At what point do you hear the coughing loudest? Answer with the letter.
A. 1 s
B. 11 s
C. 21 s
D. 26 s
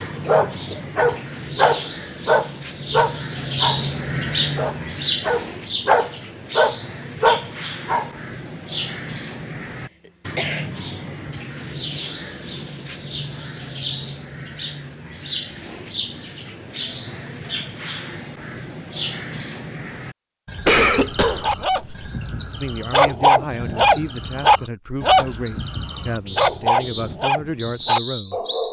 C.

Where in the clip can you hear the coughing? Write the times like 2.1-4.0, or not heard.
0.2-0.8, 10.1-10.7, 20.6-21.9.